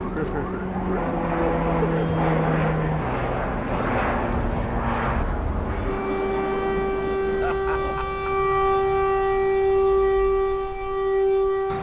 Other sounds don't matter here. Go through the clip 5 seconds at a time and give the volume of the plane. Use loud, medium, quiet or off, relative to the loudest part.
loud, medium, off.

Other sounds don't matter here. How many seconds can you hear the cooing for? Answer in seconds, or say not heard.
not heard.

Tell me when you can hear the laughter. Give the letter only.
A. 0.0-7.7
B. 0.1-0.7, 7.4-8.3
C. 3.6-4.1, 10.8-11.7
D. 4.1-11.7
B.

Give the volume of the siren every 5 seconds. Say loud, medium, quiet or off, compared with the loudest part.
quiet, loud, loud.